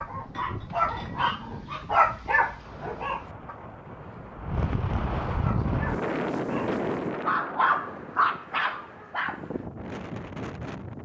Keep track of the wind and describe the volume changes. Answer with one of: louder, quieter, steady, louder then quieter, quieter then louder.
louder then quieter.